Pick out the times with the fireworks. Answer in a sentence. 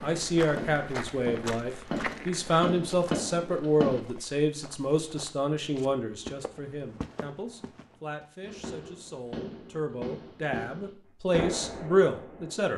The fireworks can be heard from 0.0 to 4.0 s and from 8.4 to 12.7 s.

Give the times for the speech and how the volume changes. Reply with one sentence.
You can hear the speech from 0.0 to 12.7 s, getting quieter then louder.